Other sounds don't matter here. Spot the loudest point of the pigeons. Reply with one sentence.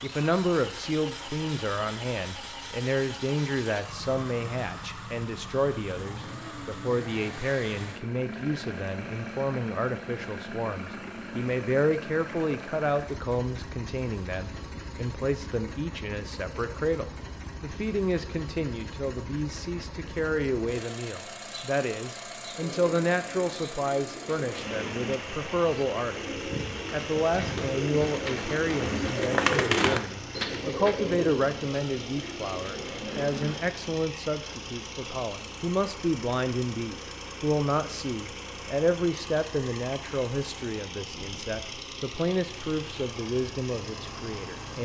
The loudest moment of the pigeons is at 30 seconds.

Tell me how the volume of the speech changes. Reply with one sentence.
The loudness of the speech stays about the same.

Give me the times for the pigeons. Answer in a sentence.
The pigeons can be heard from 22.6 to 34.0 s.